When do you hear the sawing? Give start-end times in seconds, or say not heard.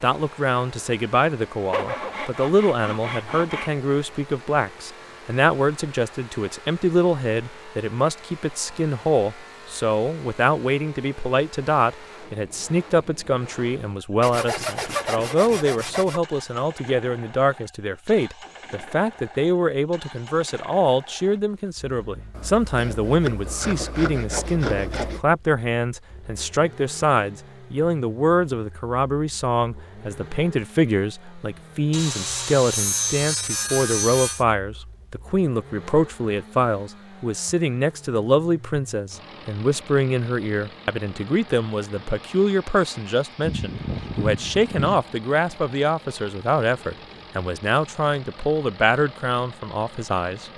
1.7-3.7, 14.2-16.2, 22.3-25.2, 31.9-34.5, 43.4-45.0.